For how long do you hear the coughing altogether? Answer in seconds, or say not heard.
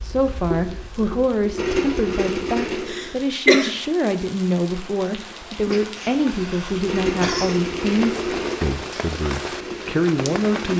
3 s.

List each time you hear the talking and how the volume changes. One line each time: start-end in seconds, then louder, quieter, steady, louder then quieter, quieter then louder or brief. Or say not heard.
0.0-10.7 steady.